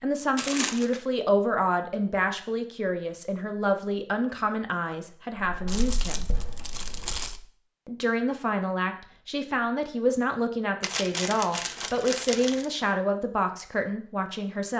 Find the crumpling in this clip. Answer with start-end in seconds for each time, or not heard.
0.3-1.1, 5.7-7.4, 10.8-12.7.